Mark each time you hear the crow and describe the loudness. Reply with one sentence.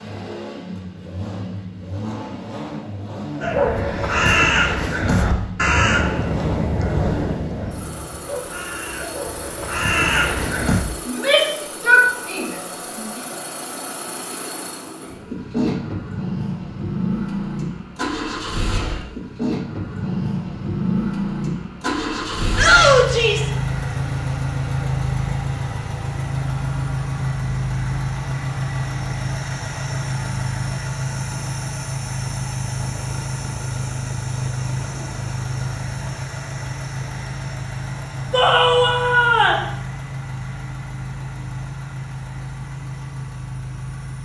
You can hear the crow from 3.4 to 10.8 s, getting quieter then louder.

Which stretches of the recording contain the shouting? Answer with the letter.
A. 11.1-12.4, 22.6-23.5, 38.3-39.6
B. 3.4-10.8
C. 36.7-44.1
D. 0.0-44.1
A.